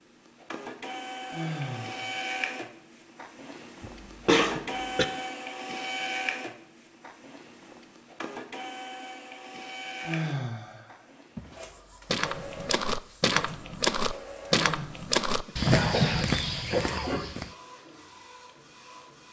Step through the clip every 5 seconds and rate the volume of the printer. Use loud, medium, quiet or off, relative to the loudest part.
loud, loud, medium, quiet.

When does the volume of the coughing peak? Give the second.
4 s.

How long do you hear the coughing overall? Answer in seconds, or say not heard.
3 s.